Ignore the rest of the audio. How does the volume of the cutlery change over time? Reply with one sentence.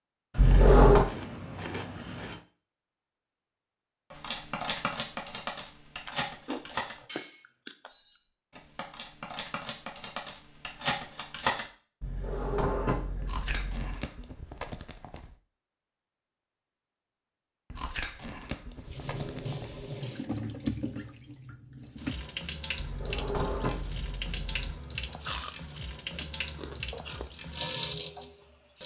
The loudness of the cutlery goes down, then up.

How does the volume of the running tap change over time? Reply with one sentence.
The volume of the running tap stays about the same.